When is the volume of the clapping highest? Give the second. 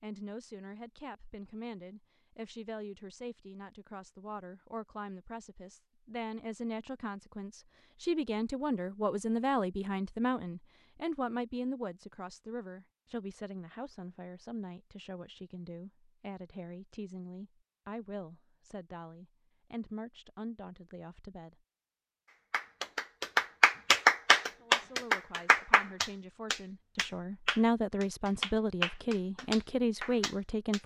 24 s.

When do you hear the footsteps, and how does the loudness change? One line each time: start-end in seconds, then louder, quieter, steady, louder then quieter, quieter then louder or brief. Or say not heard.
not heard.